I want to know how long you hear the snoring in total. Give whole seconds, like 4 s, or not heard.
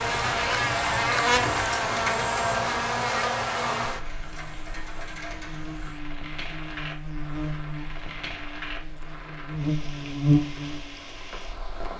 not heard.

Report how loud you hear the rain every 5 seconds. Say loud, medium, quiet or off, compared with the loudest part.
loud, medium, medium.